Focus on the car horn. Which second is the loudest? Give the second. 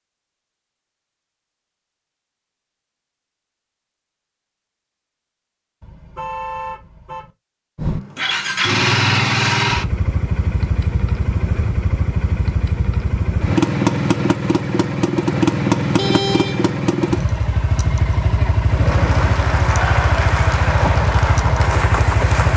16 s.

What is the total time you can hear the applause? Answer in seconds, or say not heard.
4 s.